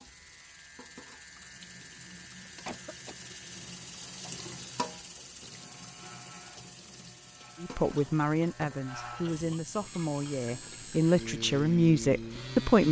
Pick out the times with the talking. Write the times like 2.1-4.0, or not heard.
7.6-12.8.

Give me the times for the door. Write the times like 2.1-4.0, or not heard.
not heard.